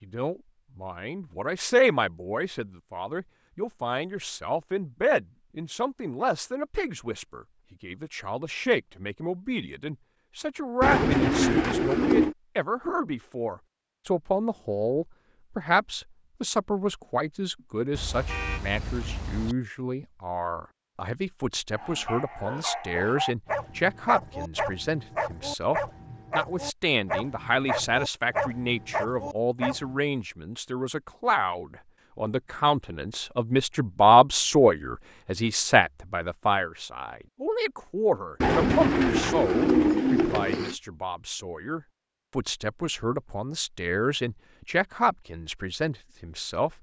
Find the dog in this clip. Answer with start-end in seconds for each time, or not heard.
21.7-30.0.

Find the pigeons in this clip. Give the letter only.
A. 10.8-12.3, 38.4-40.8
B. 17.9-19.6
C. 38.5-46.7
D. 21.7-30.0
A.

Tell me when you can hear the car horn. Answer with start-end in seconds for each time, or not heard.
17.9-19.6.